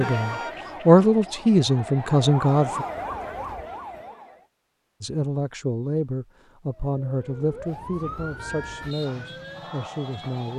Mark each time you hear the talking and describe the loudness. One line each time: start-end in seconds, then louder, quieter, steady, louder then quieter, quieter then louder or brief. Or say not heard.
0.0-2.9 brief
5.0-10.5 quieter.